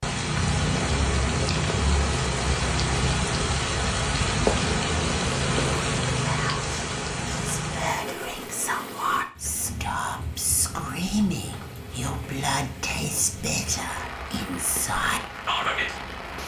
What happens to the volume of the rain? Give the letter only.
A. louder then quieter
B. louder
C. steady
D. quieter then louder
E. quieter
E.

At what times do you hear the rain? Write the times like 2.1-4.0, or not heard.
0.0-16.4.